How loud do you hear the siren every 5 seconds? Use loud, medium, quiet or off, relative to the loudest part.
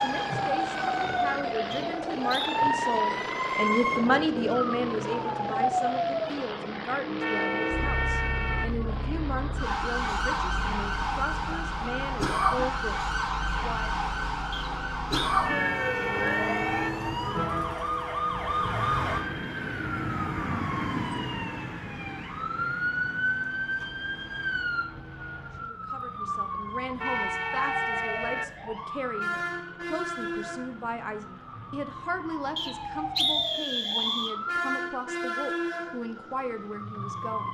loud, loud, loud, loud, loud, medium, medium, medium.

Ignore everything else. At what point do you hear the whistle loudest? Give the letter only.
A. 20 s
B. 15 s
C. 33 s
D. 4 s
C.